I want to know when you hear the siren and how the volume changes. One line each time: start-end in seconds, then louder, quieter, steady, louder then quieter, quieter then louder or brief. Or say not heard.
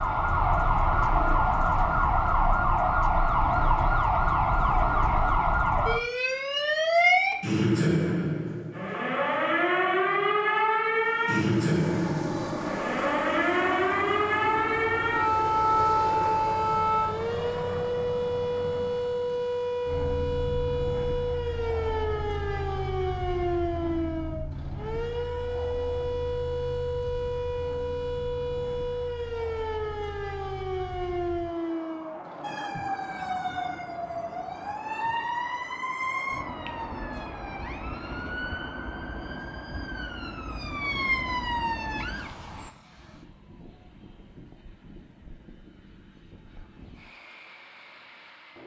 0.0-42.7 quieter.